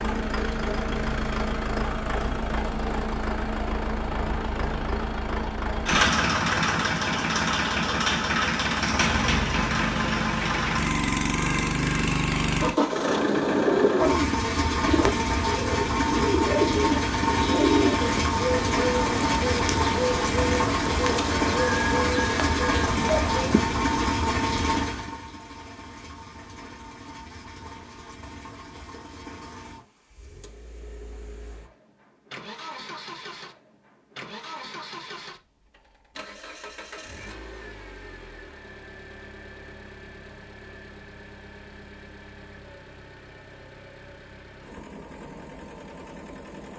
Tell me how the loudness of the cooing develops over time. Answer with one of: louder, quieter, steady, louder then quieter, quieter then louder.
steady.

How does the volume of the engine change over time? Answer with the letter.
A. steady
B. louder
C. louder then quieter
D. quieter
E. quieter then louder
D.